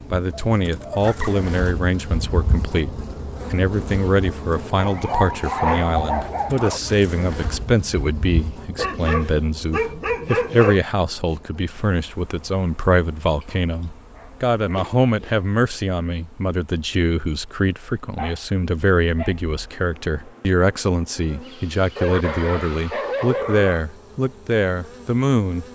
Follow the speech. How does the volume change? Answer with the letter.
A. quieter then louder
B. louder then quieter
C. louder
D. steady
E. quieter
D.